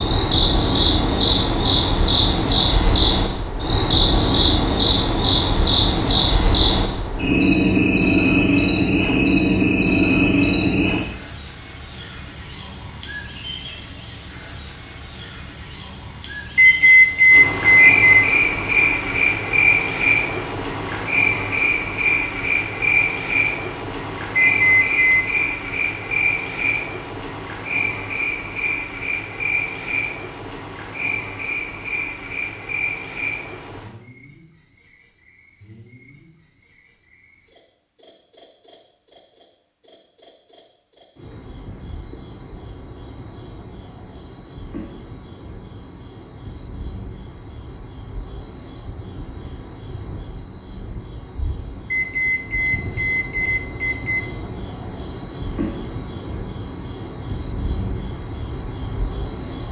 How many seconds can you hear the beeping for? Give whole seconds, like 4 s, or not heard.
5 s.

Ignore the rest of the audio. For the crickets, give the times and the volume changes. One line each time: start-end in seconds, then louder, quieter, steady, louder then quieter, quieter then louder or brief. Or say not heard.
0.0-59.6 quieter.